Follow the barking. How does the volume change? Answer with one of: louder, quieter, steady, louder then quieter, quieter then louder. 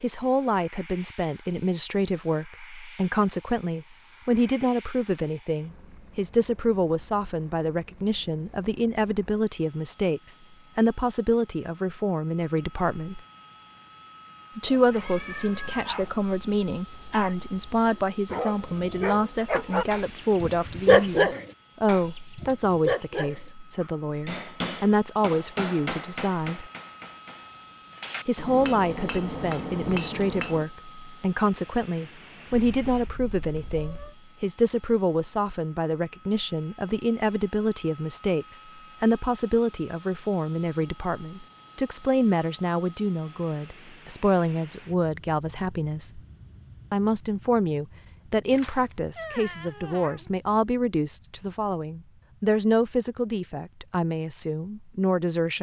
louder then quieter.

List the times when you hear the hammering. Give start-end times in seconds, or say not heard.
24.2-30.7.